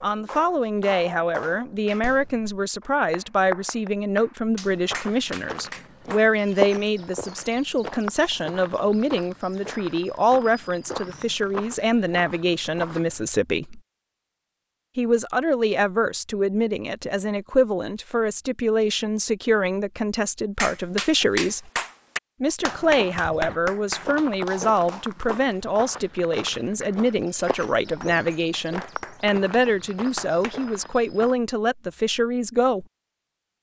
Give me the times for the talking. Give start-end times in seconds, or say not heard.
0.0-13.8, 14.9-21.7, 22.4-32.9.